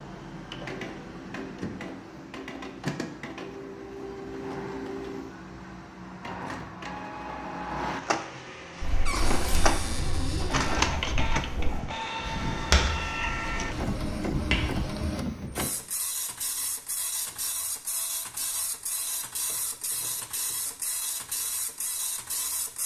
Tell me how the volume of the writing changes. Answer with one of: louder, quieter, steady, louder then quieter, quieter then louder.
louder then quieter.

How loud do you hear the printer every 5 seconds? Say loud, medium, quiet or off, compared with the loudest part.
medium, loud, loud, medium, medium.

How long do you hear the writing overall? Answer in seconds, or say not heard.
6 s.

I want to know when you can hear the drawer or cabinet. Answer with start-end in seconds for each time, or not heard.
9.1-10.8.